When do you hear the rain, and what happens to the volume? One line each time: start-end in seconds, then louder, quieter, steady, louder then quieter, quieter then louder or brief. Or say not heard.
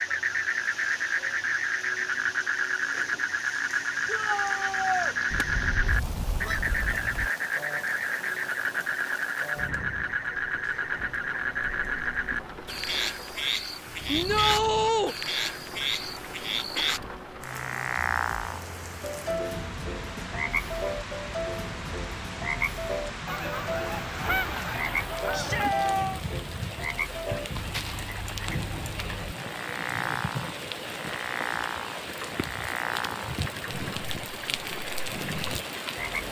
0.0-36.2 louder.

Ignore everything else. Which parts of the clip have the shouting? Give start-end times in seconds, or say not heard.
4.0-5.2, 14.1-15.2, 25.3-26.2.